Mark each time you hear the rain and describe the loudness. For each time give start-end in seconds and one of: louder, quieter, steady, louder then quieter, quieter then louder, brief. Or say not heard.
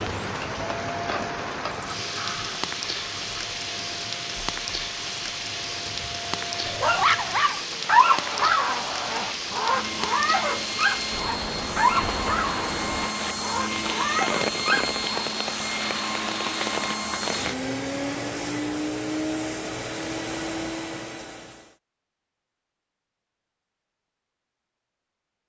0.0-17.6 steady.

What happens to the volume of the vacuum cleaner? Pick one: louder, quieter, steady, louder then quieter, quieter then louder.
louder.